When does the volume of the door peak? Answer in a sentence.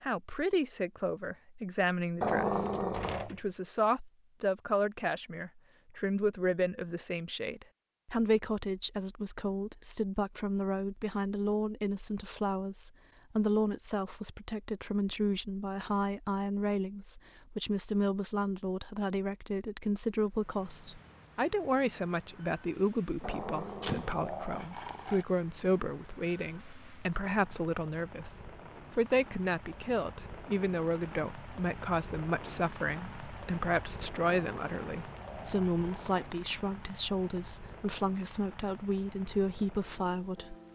The loudest moment of the door is at 24 seconds.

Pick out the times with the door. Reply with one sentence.
The door can be heard from 2.6 to 3.5 s and from 23.2 to 24.2 s.